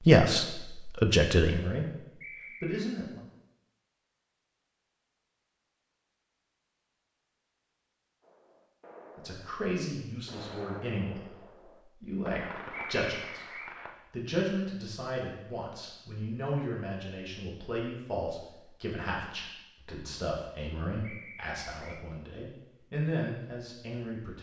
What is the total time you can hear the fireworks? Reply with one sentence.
You can hear the fireworks for 6 seconds altogether.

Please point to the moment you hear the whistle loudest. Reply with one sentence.
The loudest moment of the whistle is at 13 seconds.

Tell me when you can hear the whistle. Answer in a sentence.
You can hear the whistle from 2.2 to 2.8 s, from 12.7 to 13.8 s and from 21.0 to 22.1 s.